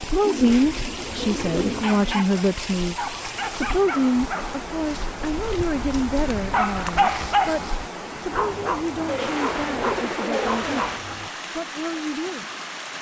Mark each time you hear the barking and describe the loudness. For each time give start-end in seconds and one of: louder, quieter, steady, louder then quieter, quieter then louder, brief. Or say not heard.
0.5-11.3 louder then quieter.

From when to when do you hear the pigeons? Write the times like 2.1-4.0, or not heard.
0.2-2.2, 9.1-11.1.